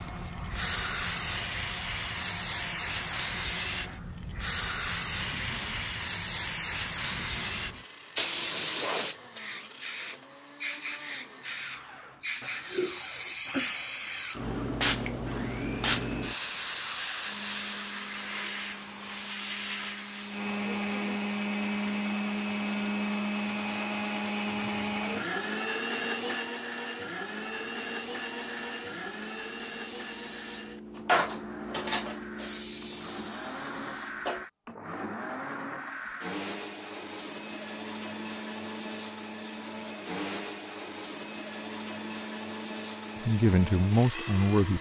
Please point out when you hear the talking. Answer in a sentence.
The talking can be heard from 43.2 to 44.7 s.